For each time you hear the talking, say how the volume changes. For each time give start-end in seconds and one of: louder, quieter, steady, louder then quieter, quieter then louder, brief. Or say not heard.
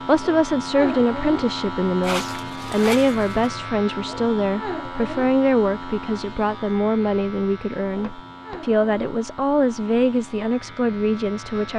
0.1-11.7 steady.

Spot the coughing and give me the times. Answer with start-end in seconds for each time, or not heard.
not heard.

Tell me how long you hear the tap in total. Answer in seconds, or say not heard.
not heard.